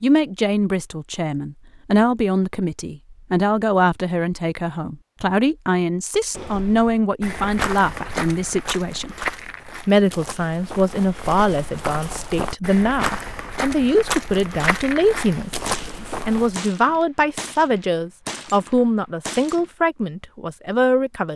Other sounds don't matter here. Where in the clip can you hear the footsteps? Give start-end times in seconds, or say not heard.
6.3-16.6.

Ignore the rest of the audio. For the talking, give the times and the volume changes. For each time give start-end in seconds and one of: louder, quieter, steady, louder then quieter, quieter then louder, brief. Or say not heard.
0.0-9.2 steady
9.8-21.3 steady.